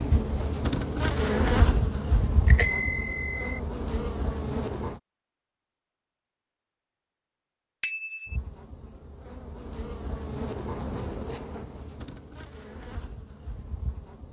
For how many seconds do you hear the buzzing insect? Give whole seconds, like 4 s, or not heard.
11 s.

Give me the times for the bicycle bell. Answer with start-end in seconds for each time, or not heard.
2.5-3.6, 7.8-8.3.